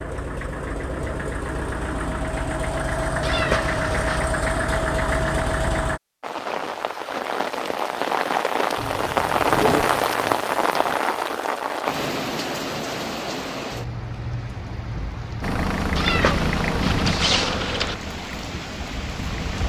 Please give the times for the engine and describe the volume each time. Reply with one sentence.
The engine can be heard from 0.0 to 6.0 s, getting louder; briefly from 8.8 to 11.0 s; and from 15.4 to 19.6 s, getting quieter.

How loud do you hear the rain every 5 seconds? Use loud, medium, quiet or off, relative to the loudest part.
off, loud, loud, medium.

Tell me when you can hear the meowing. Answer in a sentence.
The meowing can be heard from 3.2 to 4.2 s and from 15.9 to 17.9 s.